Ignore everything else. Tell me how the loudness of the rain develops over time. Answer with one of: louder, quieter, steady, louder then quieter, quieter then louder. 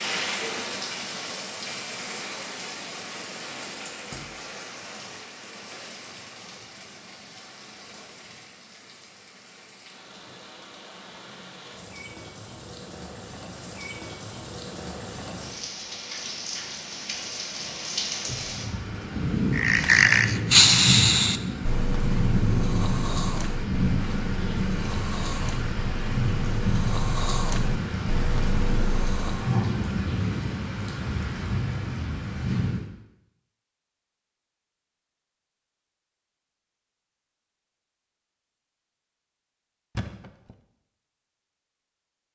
quieter then louder.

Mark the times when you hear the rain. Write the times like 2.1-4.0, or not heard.
0.0-32.9.